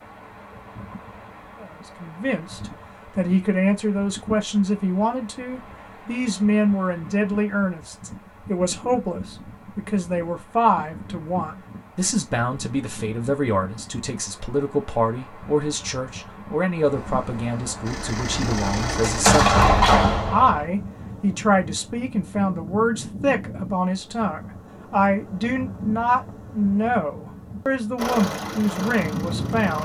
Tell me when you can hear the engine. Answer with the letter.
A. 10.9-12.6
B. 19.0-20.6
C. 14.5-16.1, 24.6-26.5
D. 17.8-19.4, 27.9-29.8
D.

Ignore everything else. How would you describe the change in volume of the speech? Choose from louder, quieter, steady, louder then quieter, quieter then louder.
steady.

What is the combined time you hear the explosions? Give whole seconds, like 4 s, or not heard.
2 s.